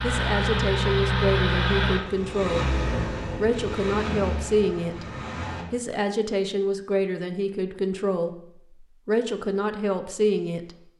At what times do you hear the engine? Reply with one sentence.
The engine can be heard from 0.0 to 5.7 s.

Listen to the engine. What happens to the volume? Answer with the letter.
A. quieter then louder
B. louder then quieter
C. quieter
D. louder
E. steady
C.